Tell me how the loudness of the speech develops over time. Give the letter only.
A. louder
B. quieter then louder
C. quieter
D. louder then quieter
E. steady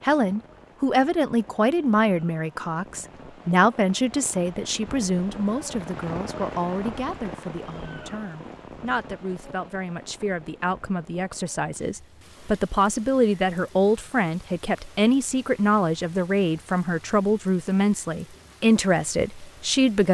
B.